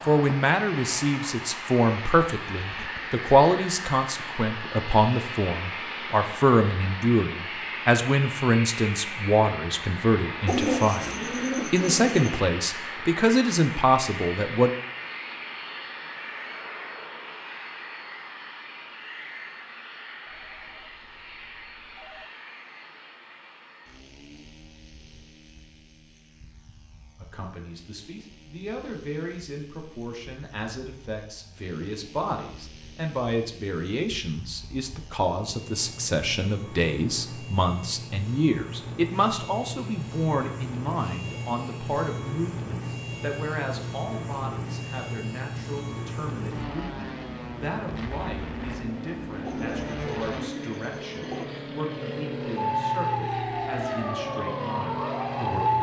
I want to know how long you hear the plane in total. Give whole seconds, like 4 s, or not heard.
56 s.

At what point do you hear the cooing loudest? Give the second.
11 s.